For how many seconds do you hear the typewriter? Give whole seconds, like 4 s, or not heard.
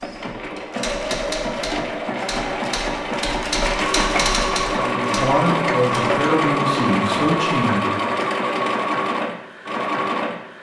6 s.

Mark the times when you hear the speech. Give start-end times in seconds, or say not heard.
4.8-7.8.